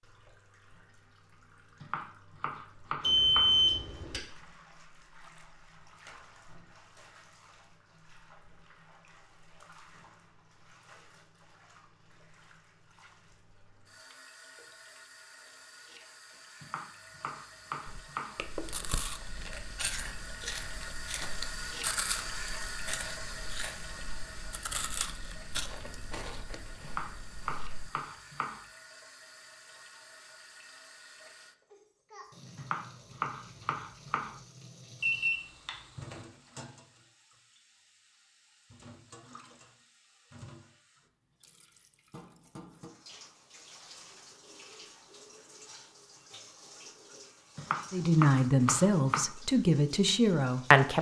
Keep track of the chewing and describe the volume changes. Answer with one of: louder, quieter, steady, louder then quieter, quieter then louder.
quieter.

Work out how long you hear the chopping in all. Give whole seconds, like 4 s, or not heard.
9 s.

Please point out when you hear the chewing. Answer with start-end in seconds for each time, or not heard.
17.9-27.9.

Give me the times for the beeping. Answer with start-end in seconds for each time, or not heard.
3.0-4.2, 35.0-36.1.